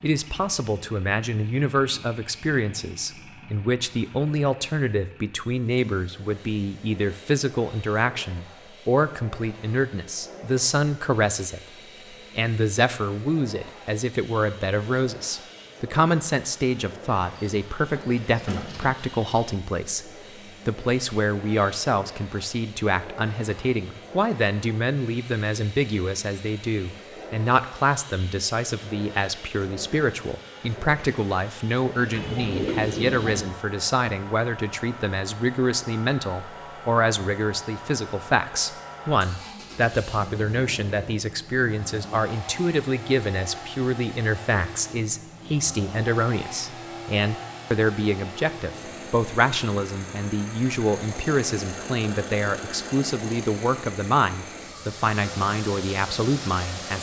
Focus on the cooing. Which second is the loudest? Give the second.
33 s.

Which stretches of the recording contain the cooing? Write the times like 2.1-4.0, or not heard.
17.4-18.9, 32.1-33.5.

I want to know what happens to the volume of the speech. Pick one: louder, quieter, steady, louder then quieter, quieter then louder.
steady.